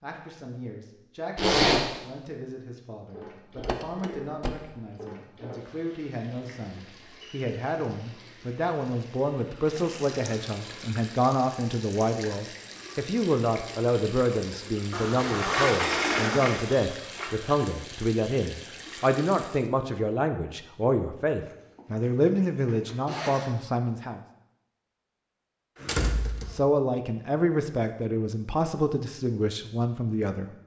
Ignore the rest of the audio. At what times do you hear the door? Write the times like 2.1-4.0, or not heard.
3.5-4.5, 15.2-17.4, 25.8-26.6.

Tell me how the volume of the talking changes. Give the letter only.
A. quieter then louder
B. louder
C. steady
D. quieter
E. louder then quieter
B.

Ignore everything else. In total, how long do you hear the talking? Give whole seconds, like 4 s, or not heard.
28 s.